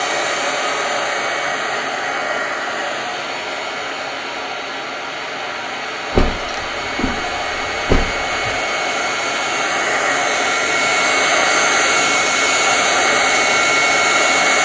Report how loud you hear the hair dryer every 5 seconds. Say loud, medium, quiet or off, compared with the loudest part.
medium, medium, loud.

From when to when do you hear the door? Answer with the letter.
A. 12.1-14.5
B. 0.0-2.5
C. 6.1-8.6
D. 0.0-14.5
C.